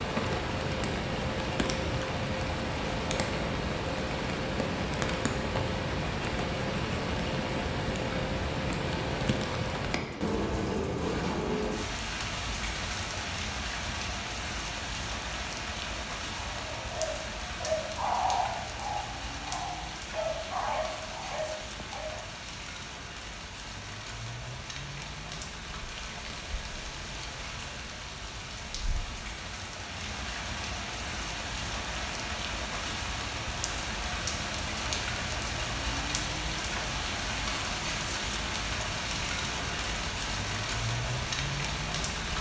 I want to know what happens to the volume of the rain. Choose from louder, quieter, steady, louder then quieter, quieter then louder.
quieter then louder.